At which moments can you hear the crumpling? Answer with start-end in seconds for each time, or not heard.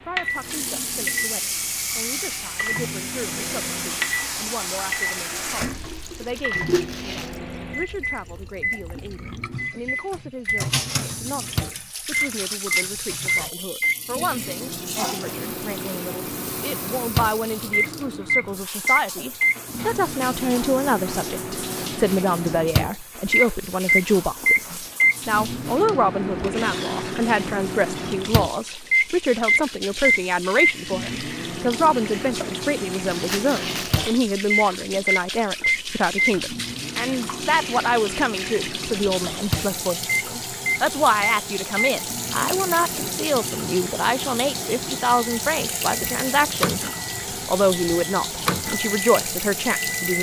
6.3-7.3, 32.9-34.1.